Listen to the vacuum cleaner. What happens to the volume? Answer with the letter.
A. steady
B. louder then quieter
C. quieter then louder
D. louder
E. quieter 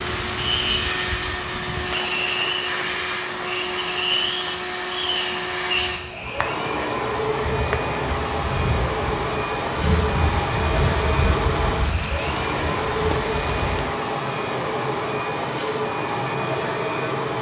A.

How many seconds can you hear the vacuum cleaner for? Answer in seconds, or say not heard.
17 s.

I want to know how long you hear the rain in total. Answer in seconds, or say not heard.
14 s.